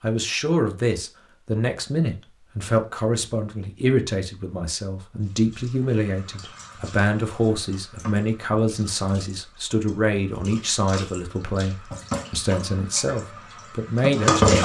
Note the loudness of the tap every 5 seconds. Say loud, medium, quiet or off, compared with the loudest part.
off, quiet, loud.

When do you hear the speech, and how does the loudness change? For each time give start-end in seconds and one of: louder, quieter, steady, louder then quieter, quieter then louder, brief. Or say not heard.
0.0-14.6 steady.